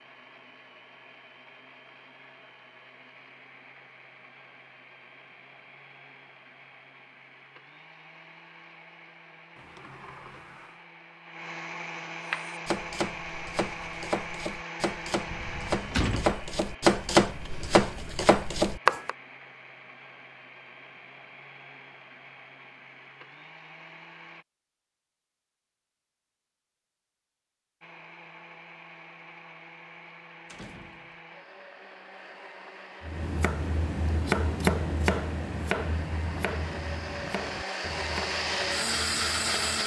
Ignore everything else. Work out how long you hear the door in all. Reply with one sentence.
The door can be heard for 3 seconds in total.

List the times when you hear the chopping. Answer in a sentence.
The chopping can be heard from 12.3 to 19.1 s and from 33.0 to 39.8 s.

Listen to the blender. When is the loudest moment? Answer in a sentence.
The volume of the blender peaks at 39 seconds.